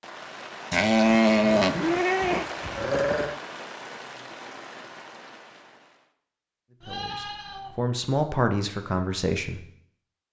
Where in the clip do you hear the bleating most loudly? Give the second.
1 s.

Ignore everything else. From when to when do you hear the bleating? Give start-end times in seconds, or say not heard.
0.7-3.4, 6.8-7.8.